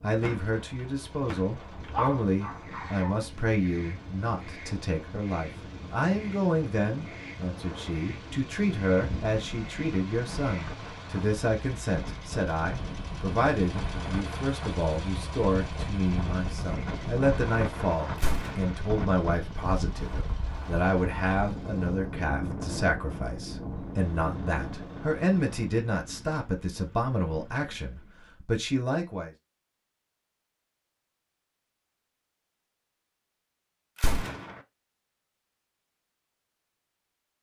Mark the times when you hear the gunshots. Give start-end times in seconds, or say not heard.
0.2-2.0, 18.1-18.8, 34.0-34.6.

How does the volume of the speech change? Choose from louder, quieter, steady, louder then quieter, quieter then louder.
steady.